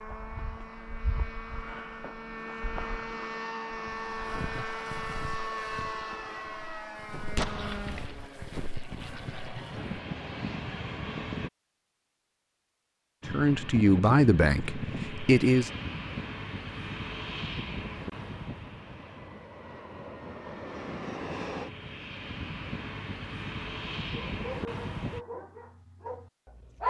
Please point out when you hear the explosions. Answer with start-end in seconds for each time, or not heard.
7.3-8.3.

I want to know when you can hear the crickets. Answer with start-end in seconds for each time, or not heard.
not heard.